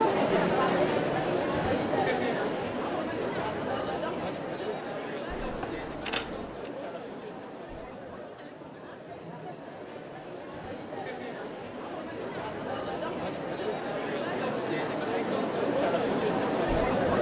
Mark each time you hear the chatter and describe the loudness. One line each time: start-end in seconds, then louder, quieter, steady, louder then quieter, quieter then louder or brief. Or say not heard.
0.0-17.1 quieter then louder.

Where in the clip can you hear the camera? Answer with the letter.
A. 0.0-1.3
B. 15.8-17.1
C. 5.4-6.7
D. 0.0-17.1
C.